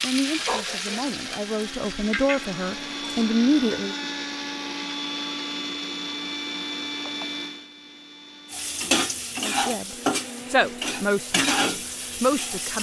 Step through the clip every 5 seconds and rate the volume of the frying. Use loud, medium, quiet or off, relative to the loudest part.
medium, loud, loud.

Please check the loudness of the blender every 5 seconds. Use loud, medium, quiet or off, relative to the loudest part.
loud, loud, medium.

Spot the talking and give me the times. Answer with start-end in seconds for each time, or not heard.
0.0-4.0, 9.4-12.7.